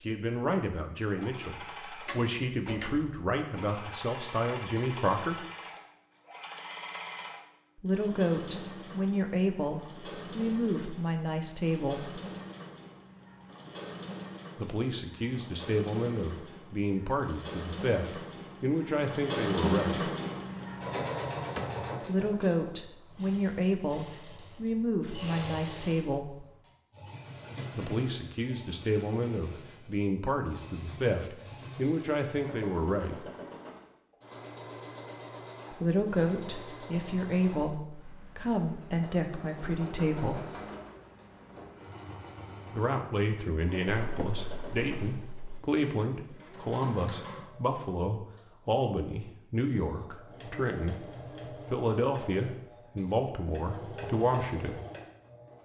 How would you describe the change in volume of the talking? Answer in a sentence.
The loudness of the talking stays about the same.